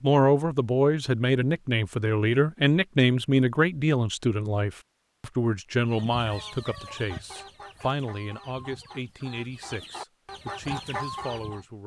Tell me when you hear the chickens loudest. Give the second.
11 s.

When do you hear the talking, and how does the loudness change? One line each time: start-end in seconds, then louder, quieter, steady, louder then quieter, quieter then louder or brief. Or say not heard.
0.0-11.8 quieter.